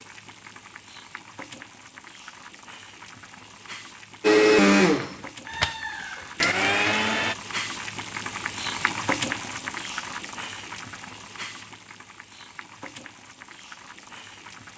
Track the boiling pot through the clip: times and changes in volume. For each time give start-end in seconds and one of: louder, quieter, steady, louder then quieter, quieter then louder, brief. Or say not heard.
0.0-14.7 louder then quieter.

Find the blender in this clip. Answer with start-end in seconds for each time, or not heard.
4.2-7.3.